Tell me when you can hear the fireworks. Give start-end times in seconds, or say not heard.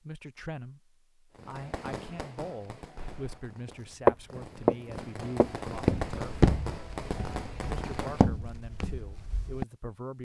1.4-8.2.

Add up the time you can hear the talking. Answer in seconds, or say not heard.
9 s.